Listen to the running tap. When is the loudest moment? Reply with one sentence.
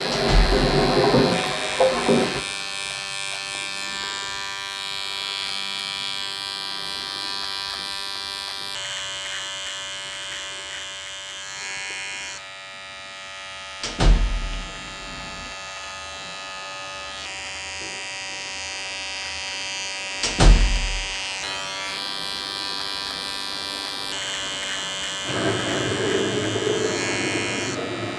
The volume of the running tap peaks at 1 second.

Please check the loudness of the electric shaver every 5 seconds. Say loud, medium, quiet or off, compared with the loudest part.
loud, loud, medium, loud, loud, loud.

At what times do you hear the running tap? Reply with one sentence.
The running tap can be heard from 0.0 to 2.4 s and from 14.4 to 28.1 s.